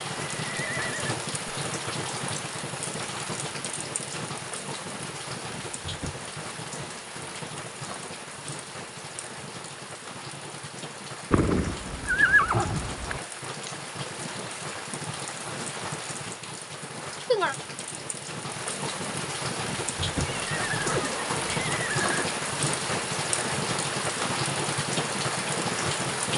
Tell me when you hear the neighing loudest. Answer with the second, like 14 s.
12 s.